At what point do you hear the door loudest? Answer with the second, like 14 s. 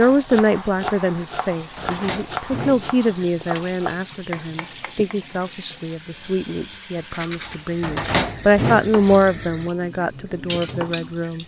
8 s.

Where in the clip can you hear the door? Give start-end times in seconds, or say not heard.
1.8-3.5, 7.8-8.9.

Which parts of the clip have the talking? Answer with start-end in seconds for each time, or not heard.
0.0-11.4.